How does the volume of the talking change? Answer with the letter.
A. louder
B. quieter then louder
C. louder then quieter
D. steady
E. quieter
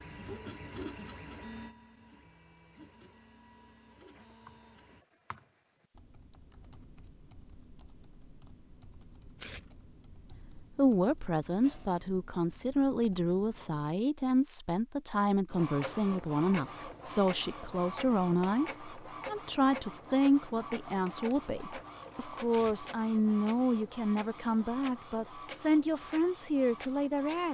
D.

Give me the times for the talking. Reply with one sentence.
You can hear the talking from 10.8 to 27.5 s.